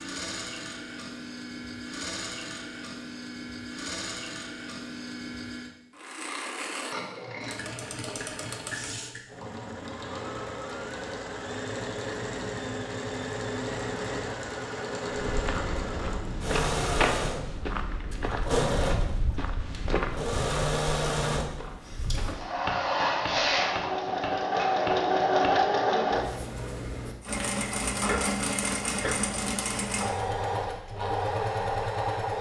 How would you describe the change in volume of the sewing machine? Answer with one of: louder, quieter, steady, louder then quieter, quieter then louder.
louder.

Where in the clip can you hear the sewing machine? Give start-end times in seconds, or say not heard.
0.0-32.3.